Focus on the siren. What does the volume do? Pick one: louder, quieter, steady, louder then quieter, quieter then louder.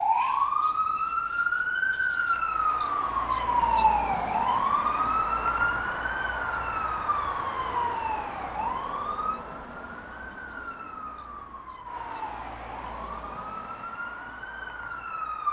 quieter.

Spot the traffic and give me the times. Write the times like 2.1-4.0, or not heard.
0.0-15.4.